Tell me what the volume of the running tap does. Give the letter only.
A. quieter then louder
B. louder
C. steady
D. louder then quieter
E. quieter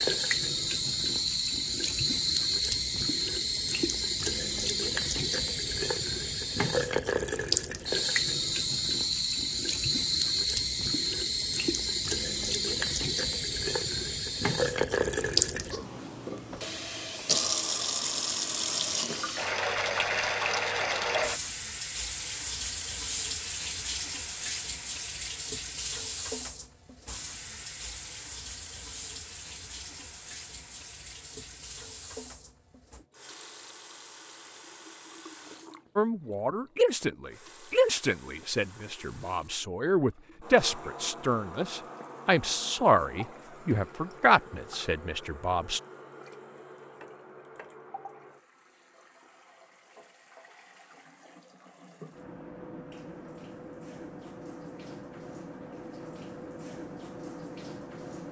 E.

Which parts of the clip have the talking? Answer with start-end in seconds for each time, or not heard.
36.0-45.8.